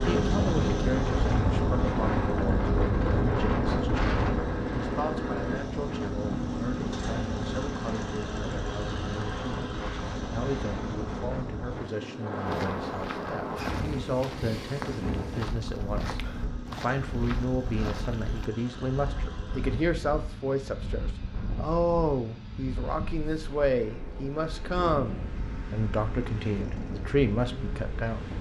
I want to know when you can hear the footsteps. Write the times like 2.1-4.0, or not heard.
12.4-18.4.